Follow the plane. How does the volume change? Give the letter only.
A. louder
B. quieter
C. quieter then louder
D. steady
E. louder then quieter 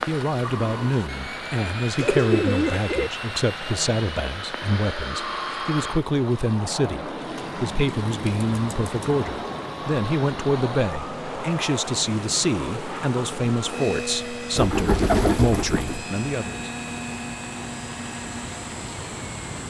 D.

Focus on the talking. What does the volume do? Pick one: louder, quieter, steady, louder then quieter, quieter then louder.
steady.